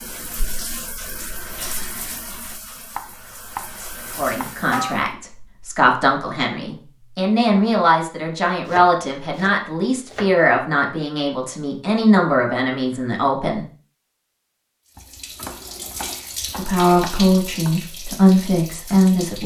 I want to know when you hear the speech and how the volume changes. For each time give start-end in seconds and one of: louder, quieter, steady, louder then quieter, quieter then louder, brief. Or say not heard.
4.2-13.7 steady
16.6-19.4 brief.